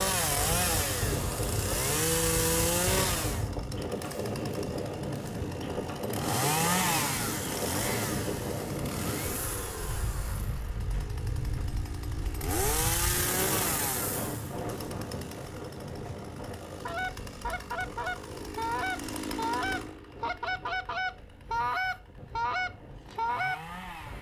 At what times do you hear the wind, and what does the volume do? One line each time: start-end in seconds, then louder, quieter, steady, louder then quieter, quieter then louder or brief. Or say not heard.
0.0-24.1 quieter.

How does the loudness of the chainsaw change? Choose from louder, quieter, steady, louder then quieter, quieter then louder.
quieter.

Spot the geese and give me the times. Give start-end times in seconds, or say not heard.
16.9-23.6.